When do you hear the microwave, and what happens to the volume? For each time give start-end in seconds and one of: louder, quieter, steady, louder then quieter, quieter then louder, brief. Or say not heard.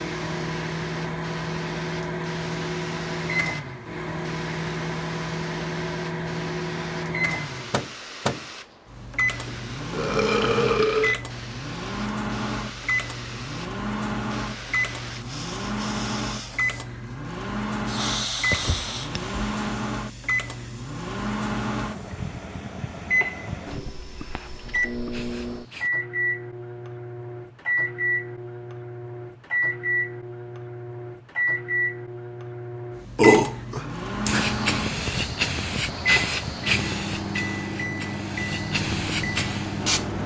0.0-40.2 steady.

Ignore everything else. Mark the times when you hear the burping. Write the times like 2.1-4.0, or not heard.
9.4-11.2, 18.5-19.8, 33.1-34.5.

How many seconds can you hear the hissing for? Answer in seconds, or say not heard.
32 s.